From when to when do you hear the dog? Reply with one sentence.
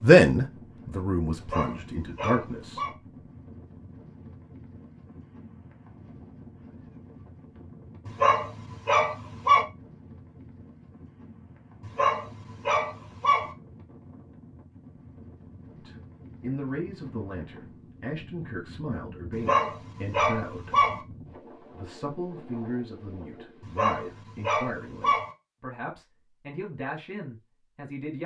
The dog can be heard from 1.4 to 3.0 s, from 8.1 to 9.7 s, from 11.8 to 13.6 s, from 19.3 to 21.0 s and from 23.6 to 25.4 s.